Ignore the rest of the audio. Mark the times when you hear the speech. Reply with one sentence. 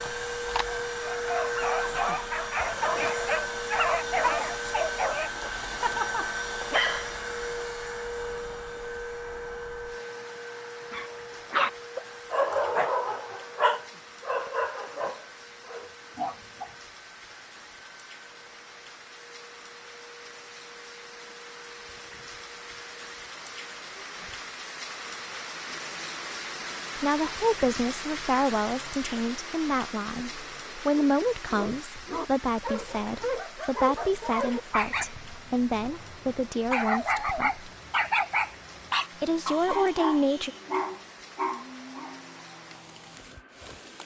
You can hear the speech from 26.9 to 37.7 s and from 39.2 to 40.5 s.